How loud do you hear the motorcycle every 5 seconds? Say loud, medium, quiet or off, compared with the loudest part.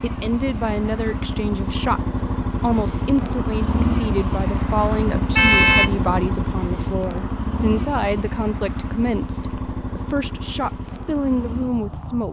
loud, loud, medium.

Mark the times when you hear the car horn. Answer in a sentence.
You can hear the car horn from 5.3 to 5.9 s.